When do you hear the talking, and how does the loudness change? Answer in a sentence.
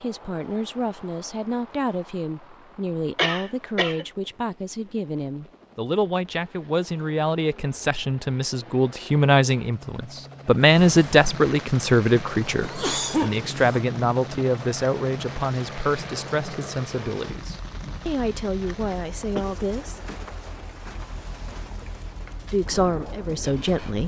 The talking can be heard from 0.0 to 20.0 s, getting louder then quieter; and briefly from 22.5 to 24.0 s.